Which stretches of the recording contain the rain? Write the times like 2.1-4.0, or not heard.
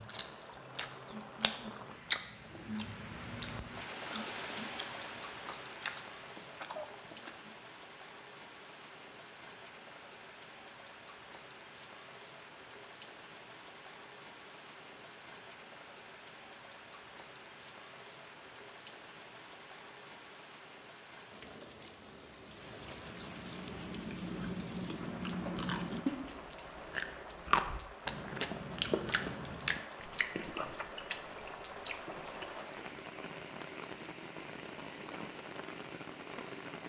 0.0-36.8.